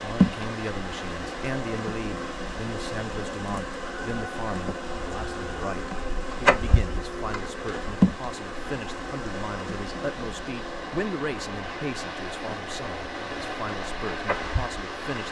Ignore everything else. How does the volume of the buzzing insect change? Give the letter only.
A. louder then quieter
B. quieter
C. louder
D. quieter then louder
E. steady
A.